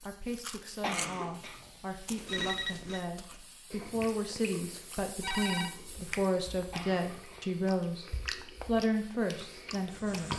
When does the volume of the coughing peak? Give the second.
1 s.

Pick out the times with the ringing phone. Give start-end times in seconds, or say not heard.
2.2-3.0, 5.2-5.8.